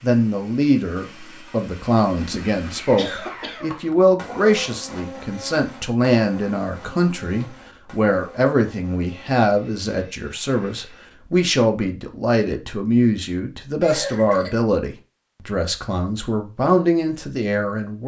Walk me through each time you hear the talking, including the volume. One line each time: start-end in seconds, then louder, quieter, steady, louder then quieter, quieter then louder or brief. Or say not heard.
0.0-18.0 steady.